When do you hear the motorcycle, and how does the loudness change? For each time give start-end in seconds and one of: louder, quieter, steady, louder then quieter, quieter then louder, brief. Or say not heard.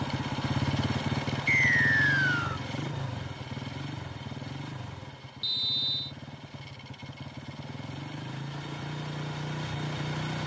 0.0-10.4 quieter then louder.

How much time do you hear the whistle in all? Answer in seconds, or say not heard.
2 s.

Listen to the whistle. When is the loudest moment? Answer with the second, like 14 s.
2 s.